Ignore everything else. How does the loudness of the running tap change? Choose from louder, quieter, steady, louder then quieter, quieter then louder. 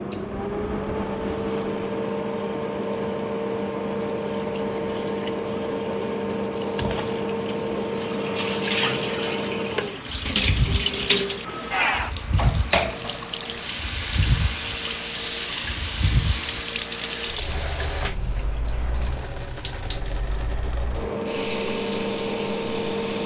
louder then quieter.